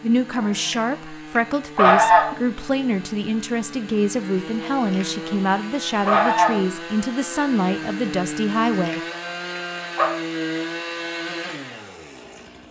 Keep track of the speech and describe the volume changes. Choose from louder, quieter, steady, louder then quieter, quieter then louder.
steady.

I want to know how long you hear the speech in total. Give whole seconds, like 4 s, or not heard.
9 s.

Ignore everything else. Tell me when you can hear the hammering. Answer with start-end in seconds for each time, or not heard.
not heard.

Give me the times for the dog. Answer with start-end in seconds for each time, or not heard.
not heard.